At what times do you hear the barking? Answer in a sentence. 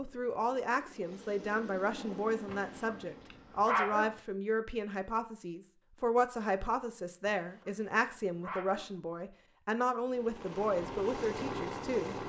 The barking can be heard from 2.5 to 4.2 s and from 7.2 to 8.9 s.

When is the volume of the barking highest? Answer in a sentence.
The loudest moment of the barking is at 4 seconds.